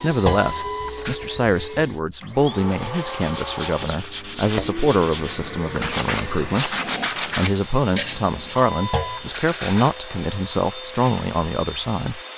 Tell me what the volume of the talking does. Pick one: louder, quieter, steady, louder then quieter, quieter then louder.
steady.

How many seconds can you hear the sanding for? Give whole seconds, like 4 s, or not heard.
6 s.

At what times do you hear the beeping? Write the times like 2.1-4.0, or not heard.
0.3-1.2, 8.8-10.0.